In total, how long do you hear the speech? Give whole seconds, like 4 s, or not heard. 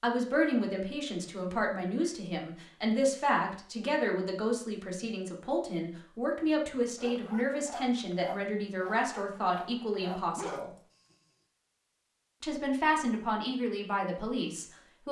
13 s.